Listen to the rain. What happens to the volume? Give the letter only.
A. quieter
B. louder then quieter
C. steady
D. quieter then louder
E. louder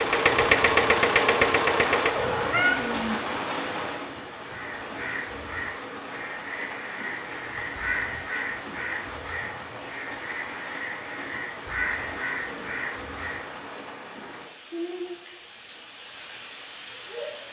A.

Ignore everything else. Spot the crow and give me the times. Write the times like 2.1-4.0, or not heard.
4.5-13.4.